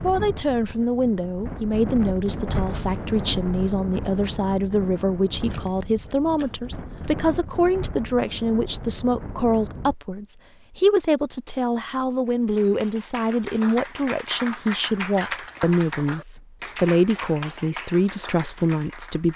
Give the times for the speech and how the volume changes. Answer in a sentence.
You can hear the speech from 0.0 to 19.3 s, at a steady volume.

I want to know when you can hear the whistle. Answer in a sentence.
You can't hear the whistle here.